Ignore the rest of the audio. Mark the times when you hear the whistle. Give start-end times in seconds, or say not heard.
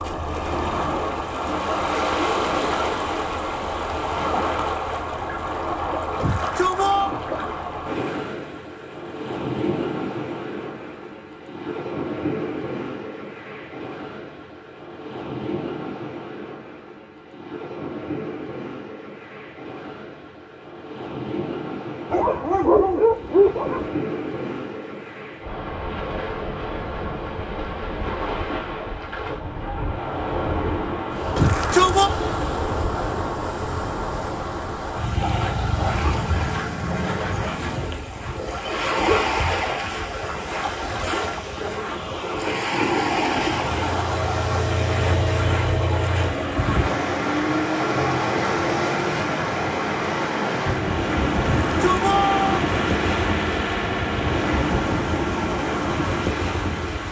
not heard.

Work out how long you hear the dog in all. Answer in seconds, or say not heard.
2 s.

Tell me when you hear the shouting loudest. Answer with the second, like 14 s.
32 s.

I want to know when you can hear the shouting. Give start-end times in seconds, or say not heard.
6.2-7.1, 31.4-32.1, 51.4-52.5.